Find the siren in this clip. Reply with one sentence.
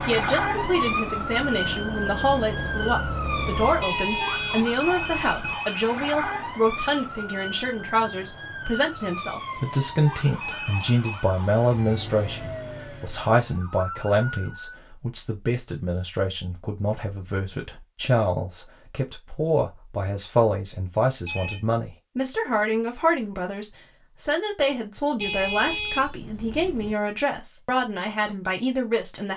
The siren can be heard from 0.0 to 14.8 s.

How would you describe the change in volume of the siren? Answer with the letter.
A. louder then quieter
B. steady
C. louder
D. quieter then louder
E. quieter
E.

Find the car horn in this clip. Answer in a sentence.
The car horn can be heard from 3.8 to 5.5 s and from 25.2 to 26.9 s.